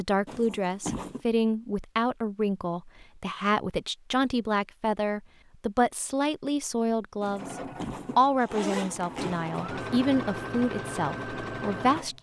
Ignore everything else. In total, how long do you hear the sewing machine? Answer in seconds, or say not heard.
5 s.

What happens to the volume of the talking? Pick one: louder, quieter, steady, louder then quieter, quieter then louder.
steady.